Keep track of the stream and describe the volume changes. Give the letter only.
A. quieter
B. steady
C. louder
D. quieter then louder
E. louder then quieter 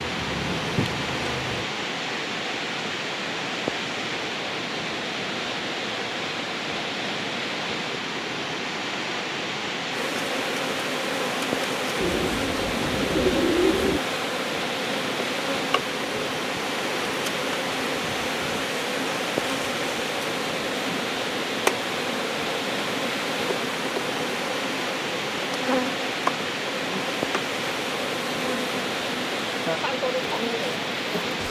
B.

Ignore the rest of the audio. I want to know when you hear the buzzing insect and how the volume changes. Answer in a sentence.
You can hear the buzzing insect briefly from 0.0 to 1.7 s; and from 9.9 to 31.4 s, at a steady volume.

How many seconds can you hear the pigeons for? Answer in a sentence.
The pigeons can be heard for 2 seconds in total.